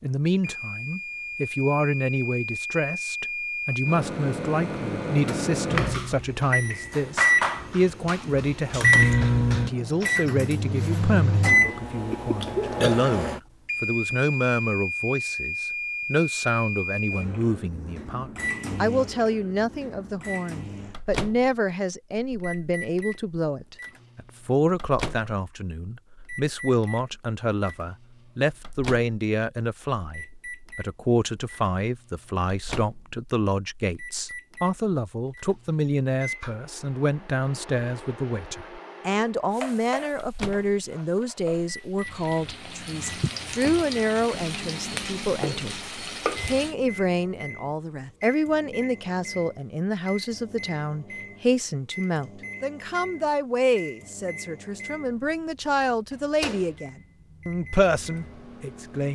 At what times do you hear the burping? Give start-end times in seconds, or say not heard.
11.6-13.1.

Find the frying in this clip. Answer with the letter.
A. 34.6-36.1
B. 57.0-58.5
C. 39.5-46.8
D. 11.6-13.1
C.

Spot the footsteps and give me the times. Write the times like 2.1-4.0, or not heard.
not heard.